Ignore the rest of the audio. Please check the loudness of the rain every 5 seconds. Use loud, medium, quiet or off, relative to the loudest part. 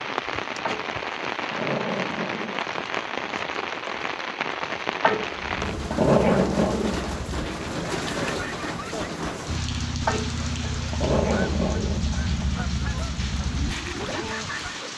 loud, loud, medium.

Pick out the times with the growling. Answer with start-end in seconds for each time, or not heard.
0.7-2.8, 5.0-7.1, 10.1-12.4.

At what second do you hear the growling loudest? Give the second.
6 s.